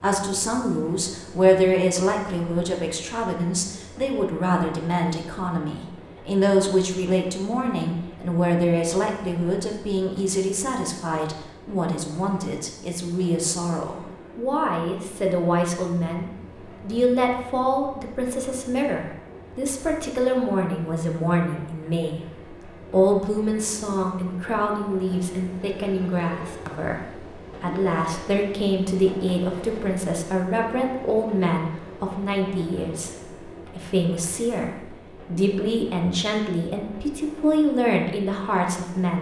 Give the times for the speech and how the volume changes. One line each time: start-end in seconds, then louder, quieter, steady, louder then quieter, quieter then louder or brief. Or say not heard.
0.0-39.1 steady.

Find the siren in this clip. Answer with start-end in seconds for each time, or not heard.
not heard.